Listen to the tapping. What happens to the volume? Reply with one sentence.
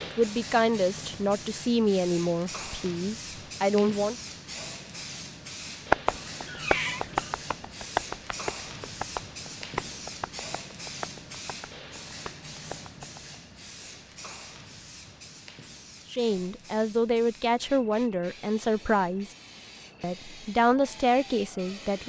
The loudness of the tapping goes down.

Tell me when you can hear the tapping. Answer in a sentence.
The tapping can be heard from 5.9 to 13.4 s.